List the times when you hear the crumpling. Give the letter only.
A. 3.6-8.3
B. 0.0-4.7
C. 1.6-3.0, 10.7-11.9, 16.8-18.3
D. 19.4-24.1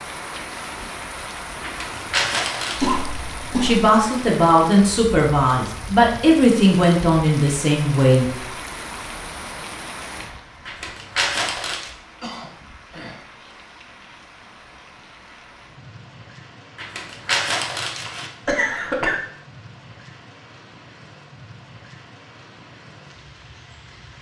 C.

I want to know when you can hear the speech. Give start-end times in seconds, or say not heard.
3.6-8.3.